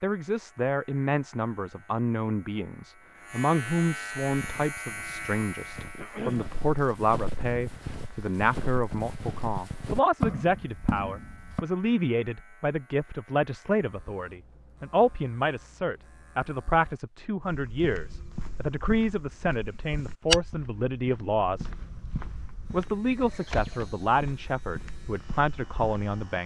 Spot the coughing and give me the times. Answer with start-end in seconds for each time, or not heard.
6.0-6.5.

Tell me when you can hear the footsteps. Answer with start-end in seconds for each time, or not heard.
4.2-11.7, 17.4-26.4.